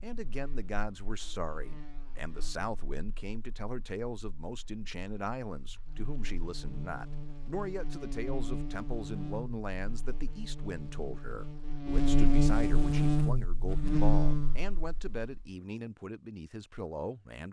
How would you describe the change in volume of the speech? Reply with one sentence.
The volume of the speech stays about the same.